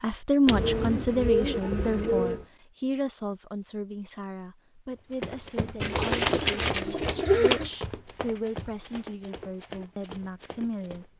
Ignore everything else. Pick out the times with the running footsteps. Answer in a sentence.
The running footsteps can be heard from 5.1 to 11.1 s.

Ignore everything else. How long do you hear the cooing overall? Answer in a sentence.
You can hear the cooing for 4 seconds altogether.